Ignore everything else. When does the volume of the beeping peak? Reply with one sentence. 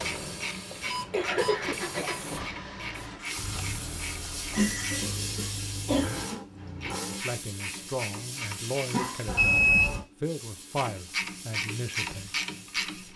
The volume of the beeping peaks at 10 seconds.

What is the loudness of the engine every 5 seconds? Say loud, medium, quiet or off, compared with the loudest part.
loud, loud, off.